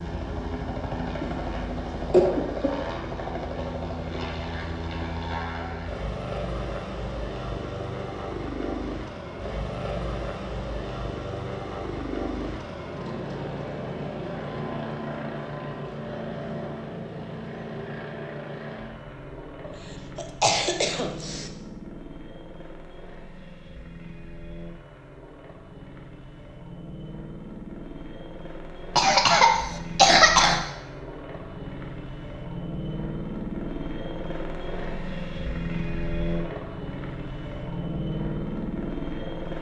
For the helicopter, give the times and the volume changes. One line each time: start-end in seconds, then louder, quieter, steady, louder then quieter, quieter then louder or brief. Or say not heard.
0.0-39.5 quieter then louder.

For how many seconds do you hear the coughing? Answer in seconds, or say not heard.
5 s.